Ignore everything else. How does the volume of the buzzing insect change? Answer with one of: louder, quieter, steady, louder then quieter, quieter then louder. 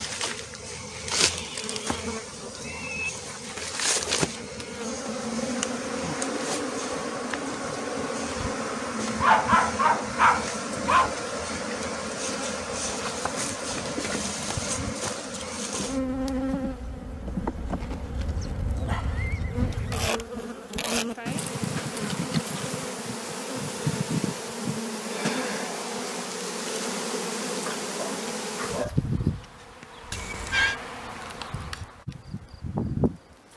steady.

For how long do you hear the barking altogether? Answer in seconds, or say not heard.
4 s.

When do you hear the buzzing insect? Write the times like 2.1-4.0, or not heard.
0.0-33.5.